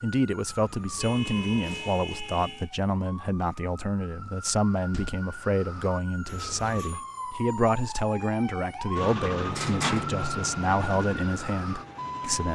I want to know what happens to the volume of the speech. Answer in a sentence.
The volume of the speech stays about the same.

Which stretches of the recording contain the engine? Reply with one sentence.
You can hear the engine from 8.9 to 12.4 s.